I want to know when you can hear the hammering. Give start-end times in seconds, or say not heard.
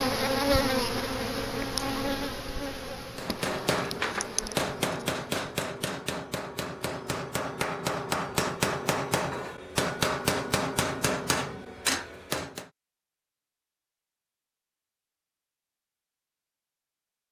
3.1-12.7.